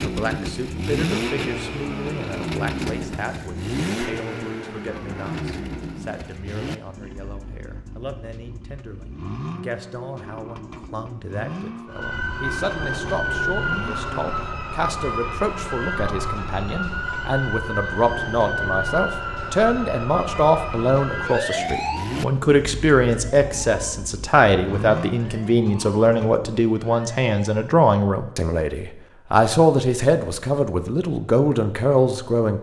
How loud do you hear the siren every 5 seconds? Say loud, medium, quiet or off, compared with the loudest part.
off, off, loud, loud, loud, quiet, off.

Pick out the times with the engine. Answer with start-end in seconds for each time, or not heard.
0.0-14.5, 21.5-26.6.